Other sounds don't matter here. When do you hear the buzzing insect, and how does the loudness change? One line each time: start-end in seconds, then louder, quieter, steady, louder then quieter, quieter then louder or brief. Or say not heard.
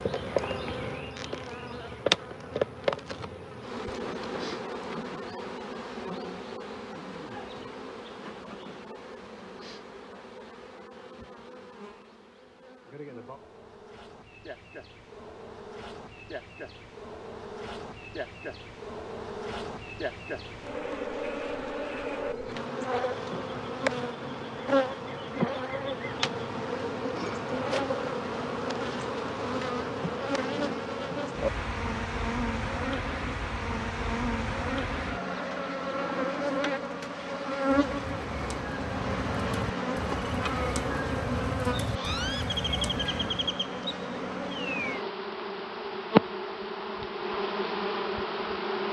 0.0-48.8 quieter then louder.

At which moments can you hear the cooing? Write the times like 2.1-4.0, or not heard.
36.8-43.4.